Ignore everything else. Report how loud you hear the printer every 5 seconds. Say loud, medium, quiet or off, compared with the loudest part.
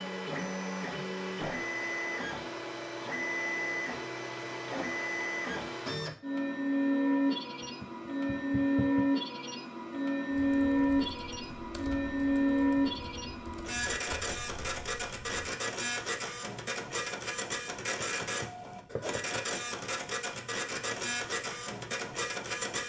medium, loud, loud, medium, medium.